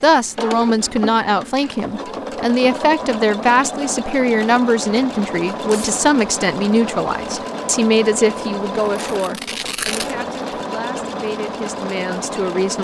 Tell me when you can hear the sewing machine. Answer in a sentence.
The sewing machine can be heard from 0.0 to 12.7 s.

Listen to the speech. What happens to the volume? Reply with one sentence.
The loudness of the speech goes down.